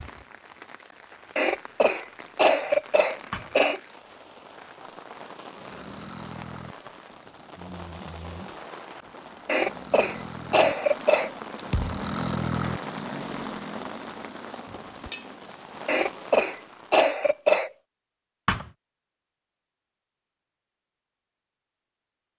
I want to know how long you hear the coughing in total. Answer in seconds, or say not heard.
6 s.